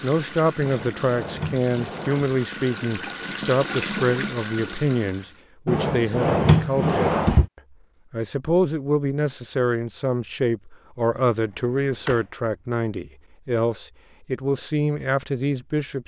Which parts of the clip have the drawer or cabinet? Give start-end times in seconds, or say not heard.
0.6-2.3, 5.7-7.5, 11.3-12.2.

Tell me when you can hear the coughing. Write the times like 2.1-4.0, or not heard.
not heard.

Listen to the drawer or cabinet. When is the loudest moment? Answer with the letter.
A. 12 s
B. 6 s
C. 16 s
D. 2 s
B.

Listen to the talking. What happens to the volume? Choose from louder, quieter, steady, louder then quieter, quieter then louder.
steady.